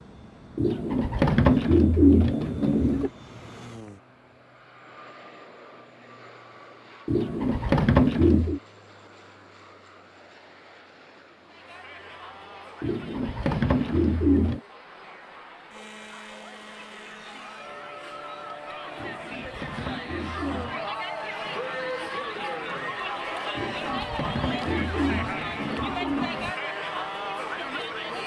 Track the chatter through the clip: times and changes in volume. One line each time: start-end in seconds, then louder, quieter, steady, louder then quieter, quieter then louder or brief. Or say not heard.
11.4-28.2 louder.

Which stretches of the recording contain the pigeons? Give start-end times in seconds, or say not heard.
0.6-3.1, 7.0-8.6, 12.8-14.6, 18.9-20.9, 23.6-26.6.